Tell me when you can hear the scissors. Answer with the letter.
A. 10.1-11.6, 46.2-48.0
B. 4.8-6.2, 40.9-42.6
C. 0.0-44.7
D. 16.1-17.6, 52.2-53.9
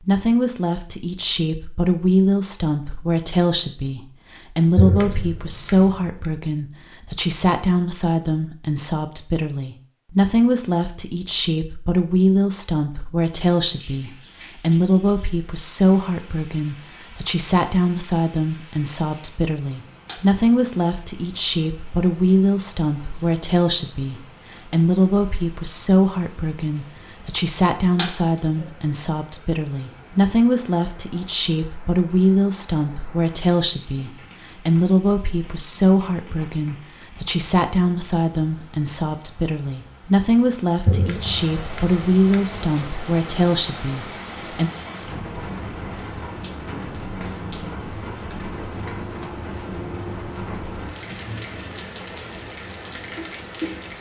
B.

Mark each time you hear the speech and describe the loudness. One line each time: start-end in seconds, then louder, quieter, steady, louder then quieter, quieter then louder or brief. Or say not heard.
0.0-44.7 steady.